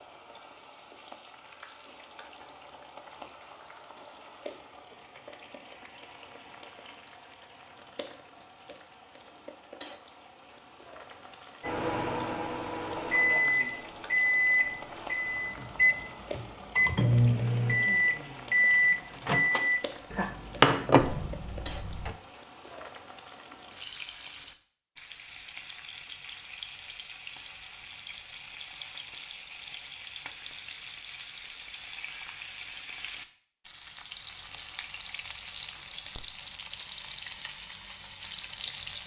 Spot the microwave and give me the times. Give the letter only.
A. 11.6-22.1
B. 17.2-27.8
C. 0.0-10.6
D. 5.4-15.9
A.